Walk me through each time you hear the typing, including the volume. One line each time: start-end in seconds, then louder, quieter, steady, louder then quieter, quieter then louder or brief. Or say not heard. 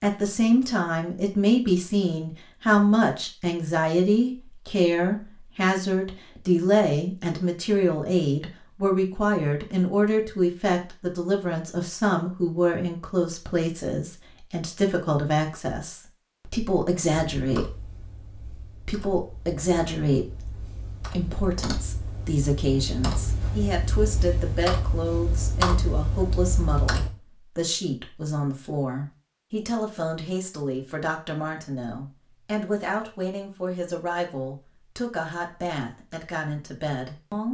17.4-27.1 louder.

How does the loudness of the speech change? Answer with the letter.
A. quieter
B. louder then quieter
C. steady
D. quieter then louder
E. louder
A.